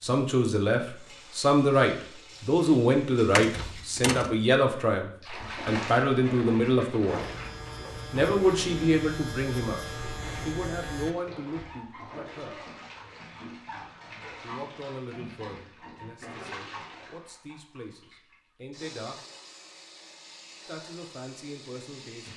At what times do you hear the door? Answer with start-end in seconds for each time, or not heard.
3.4-4.3.